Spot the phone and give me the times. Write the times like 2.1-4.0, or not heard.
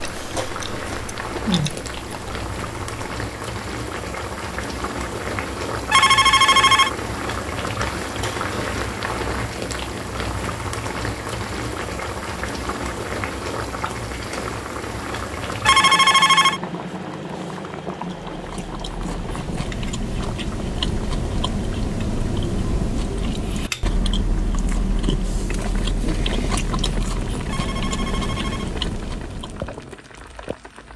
5.9-6.9, 15.7-16.6, 27.4-28.8.